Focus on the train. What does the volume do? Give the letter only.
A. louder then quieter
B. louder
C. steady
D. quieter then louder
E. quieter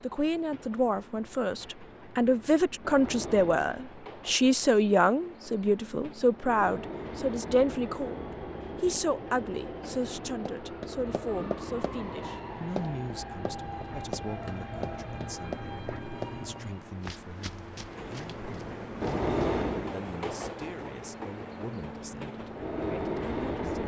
B.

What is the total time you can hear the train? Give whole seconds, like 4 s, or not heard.
24 s.